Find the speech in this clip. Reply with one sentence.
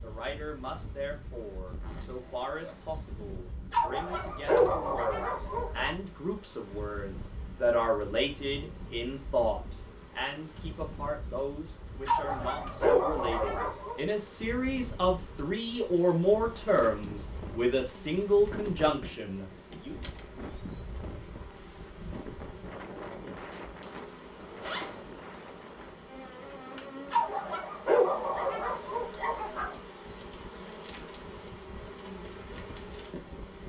The speech can be heard from 0.0 to 20.0 s.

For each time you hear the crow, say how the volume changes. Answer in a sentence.
The crow can't be heard in this clip.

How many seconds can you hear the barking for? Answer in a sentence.
You can hear the barking for 7 seconds altogether.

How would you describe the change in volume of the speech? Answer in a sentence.
The volume of the speech goes up.